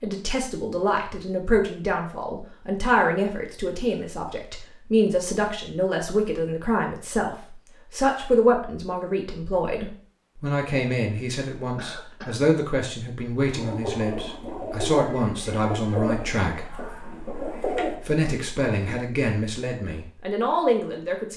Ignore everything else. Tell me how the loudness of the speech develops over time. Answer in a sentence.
The loudness of the speech stays about the same.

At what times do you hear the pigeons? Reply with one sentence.
The pigeons can be heard from 13.4 to 18.9 s.